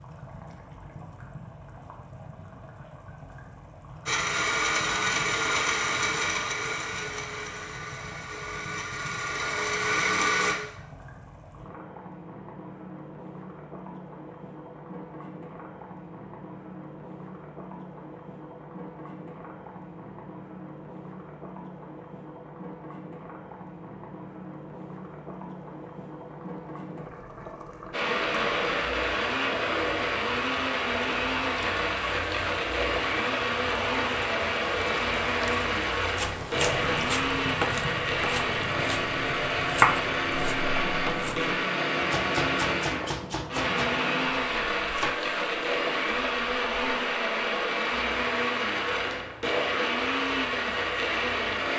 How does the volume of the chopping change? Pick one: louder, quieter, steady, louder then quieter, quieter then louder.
louder then quieter.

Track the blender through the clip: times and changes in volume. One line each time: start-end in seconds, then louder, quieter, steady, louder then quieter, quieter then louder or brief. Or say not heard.
4.0-10.6 quieter then louder
27.9-51.7 steady.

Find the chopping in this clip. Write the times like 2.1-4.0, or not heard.
36.1-45.3.